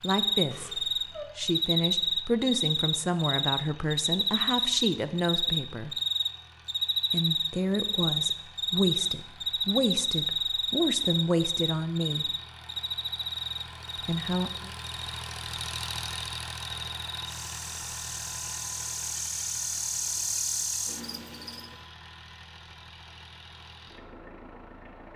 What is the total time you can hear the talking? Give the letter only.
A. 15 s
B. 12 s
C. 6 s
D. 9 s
B.